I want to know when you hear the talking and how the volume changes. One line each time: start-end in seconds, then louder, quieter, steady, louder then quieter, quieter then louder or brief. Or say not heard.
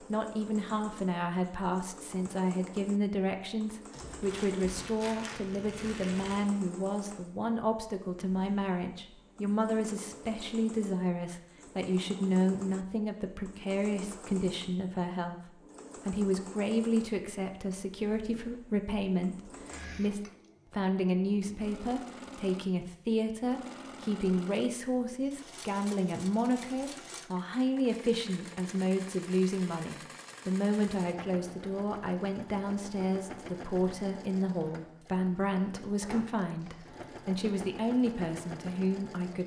0.0-39.4 steady.